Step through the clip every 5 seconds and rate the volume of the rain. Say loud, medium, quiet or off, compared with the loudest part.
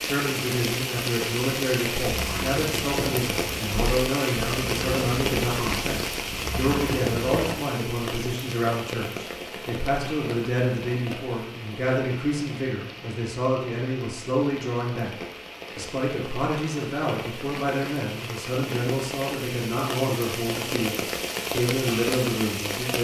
loud, loud, medium, medium, loud.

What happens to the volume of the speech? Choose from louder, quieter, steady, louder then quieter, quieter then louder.
steady.